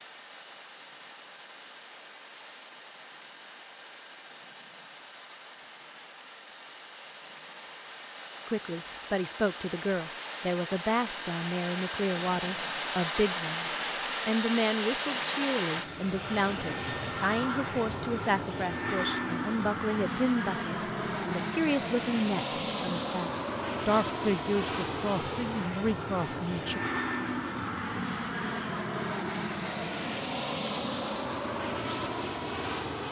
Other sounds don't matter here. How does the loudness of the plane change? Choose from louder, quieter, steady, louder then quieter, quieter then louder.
louder.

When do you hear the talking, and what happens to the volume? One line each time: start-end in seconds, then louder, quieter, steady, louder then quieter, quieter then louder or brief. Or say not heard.
8.4-26.8 steady.